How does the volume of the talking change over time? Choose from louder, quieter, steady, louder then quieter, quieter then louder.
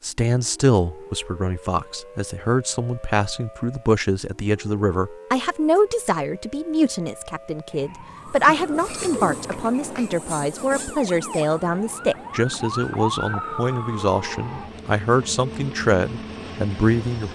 steady.